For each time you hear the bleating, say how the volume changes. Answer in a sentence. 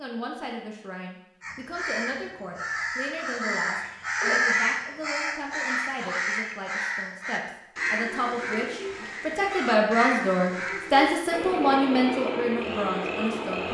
The bleating can't be heard in this clip.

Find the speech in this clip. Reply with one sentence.
You can hear the speech from 0.0 to 13.6 s.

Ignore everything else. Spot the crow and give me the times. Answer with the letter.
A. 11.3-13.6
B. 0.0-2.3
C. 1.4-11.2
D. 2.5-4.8
C.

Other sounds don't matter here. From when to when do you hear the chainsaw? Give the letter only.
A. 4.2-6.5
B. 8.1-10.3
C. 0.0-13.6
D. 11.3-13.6
D.